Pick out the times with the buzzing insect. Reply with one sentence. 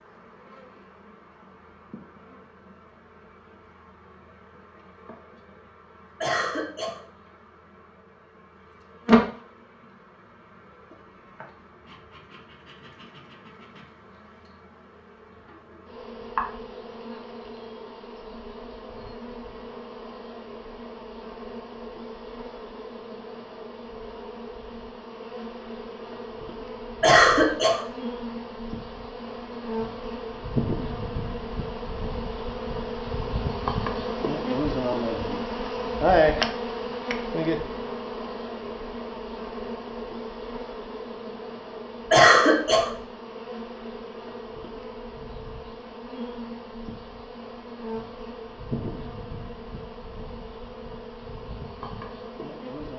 The buzzing insect can be heard from 0.0 to 52.9 s.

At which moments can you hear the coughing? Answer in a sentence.
The coughing can be heard from 6.2 to 7.0 s, from 27.0 to 27.9 s and from 42.1 to 42.9 s.